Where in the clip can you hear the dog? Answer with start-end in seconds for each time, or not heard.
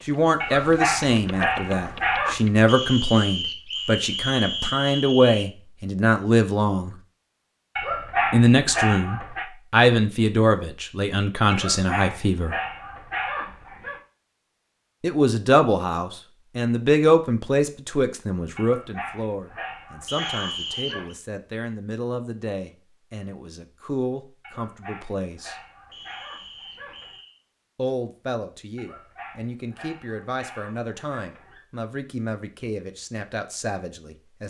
0.4-2.4, 7.8-9.4, 11.5-14.0, 18.6-21.1, 24.4-27.2, 28.8-31.6.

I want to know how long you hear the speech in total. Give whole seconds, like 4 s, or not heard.
28 s.